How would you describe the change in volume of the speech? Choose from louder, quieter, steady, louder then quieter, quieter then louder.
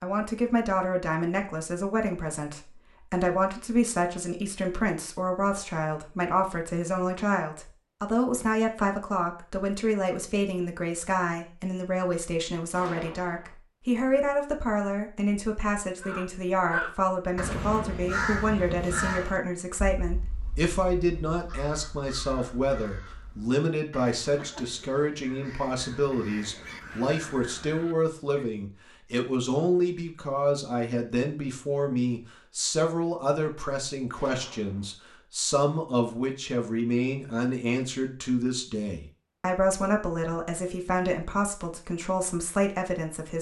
steady.